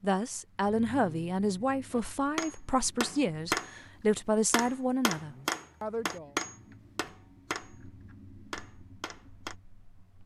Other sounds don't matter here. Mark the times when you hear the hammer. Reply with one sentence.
The hammer can be heard from 1.9 to 3.8 s, from 4.5 to 7.8 s and from 8.5 to 9.6 s.